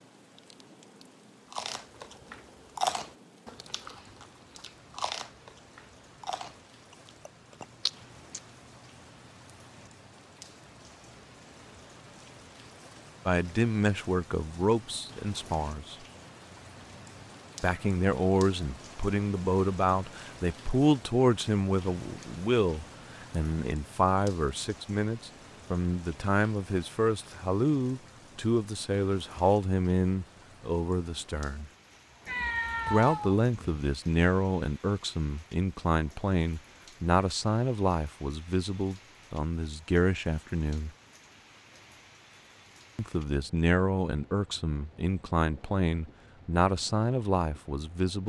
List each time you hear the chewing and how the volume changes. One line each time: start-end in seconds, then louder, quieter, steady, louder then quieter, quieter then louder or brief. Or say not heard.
1.5-8.4 quieter then louder.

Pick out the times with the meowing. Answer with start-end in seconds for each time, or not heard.
32.2-33.8.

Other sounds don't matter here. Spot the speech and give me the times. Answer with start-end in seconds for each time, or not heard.
13.2-15.9, 17.6-31.7, 32.9-40.9, 43.0-48.2.